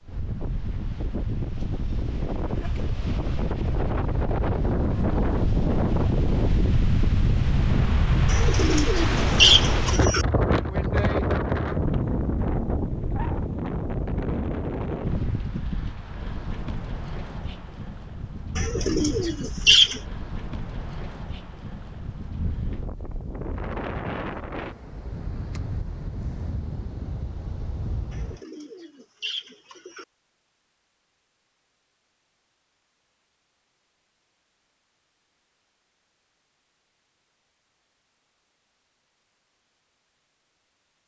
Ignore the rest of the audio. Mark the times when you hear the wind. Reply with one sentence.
You can hear the wind from 0.0 to 28.4 s.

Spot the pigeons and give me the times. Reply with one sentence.
The pigeons can be heard from 8.2 to 10.2 s, from 18.6 to 20.0 s and from 28.1 to 30.1 s.